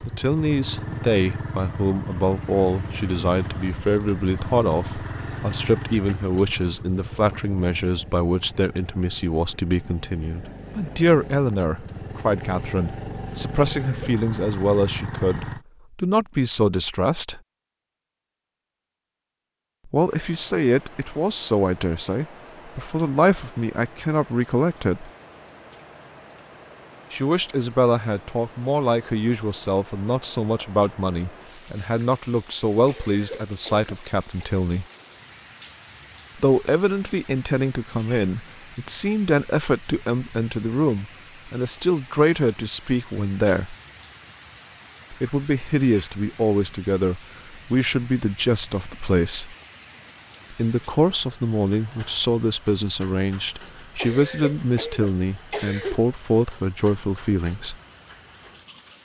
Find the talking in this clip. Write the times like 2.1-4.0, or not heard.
0.1-17.4, 19.9-25.1, 27.1-34.9, 36.4-43.8, 45.1-49.5, 50.5-57.8.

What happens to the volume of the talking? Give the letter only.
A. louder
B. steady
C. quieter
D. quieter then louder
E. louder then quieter
B.